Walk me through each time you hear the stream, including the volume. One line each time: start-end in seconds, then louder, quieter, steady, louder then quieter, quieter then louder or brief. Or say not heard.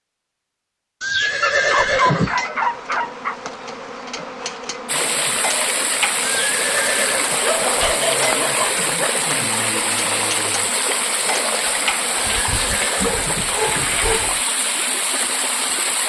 4.8-16.0 steady.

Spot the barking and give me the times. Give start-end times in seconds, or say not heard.
1.4-3.4, 7.3-9.1, 12.9-14.4.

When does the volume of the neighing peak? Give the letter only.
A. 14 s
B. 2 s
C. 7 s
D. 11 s
B.